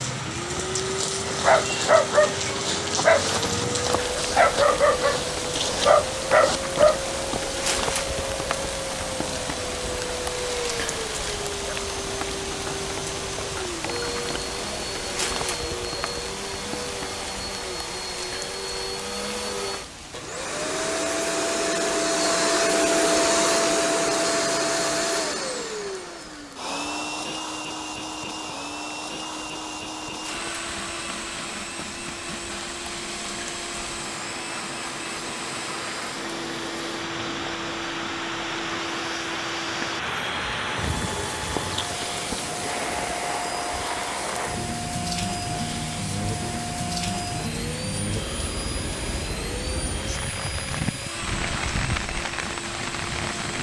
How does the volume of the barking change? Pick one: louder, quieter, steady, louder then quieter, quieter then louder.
steady.